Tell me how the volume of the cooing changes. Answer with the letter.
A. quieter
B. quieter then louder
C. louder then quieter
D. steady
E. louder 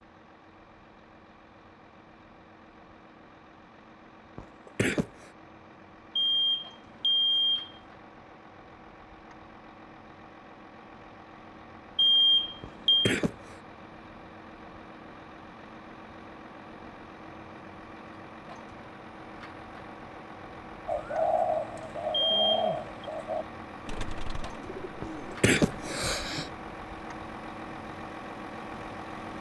A.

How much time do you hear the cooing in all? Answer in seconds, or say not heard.
6 s.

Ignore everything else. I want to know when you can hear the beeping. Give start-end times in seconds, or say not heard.
6.2-7.7, 11.9-13.2, 22.1-23.1.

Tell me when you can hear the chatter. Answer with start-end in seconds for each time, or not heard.
not heard.